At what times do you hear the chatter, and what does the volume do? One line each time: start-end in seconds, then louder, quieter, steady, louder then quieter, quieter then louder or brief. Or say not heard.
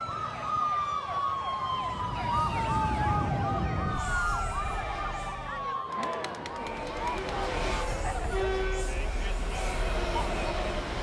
0.1-10.9 louder.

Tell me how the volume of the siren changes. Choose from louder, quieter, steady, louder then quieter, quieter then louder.
quieter.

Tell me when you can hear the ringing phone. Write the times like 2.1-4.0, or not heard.
4.5-5.5.